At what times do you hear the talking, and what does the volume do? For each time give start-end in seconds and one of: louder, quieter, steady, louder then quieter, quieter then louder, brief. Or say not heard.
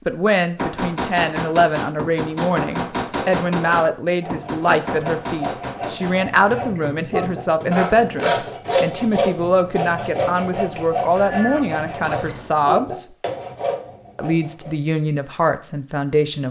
0.1-13.1 steady
14.2-16.4 brief.